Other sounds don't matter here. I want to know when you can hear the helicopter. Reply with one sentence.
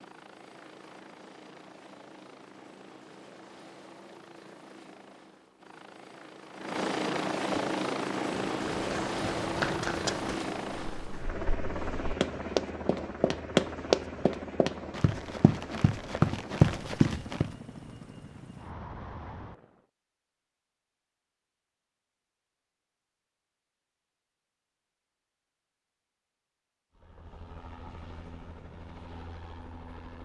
You can hear the helicopter from 0.0 to 19.9 s and from 26.9 to 30.2 s.